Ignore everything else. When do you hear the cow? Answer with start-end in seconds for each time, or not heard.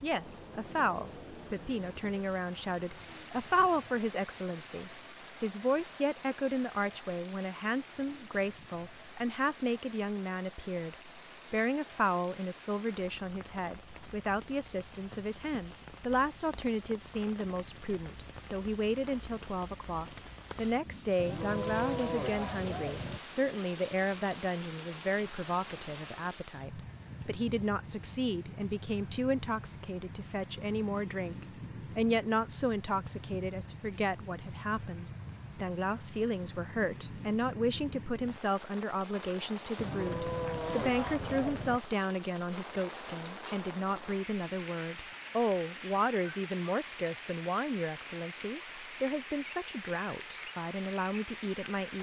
21.1-23.2, 39.8-41.8.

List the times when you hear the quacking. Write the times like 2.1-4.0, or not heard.
not heard.